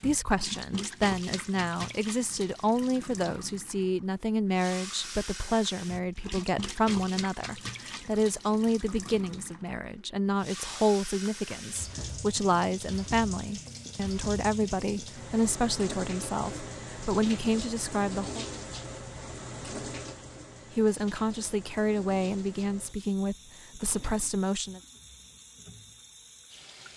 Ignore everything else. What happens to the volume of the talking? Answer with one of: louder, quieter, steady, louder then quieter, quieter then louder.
steady.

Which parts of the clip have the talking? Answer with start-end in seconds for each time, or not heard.
0.0-18.4, 20.8-24.8.